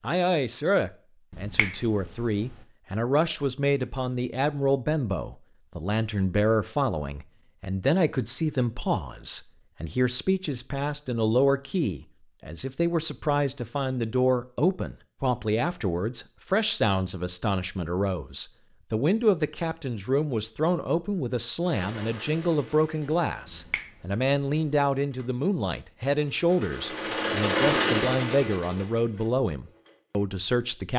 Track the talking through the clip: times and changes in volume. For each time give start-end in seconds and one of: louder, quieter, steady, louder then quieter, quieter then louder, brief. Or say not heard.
0.0-30.9 steady.